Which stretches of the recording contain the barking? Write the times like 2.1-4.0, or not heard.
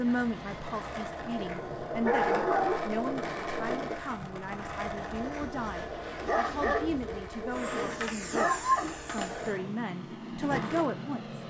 2.0-2.8, 6.2-8.9.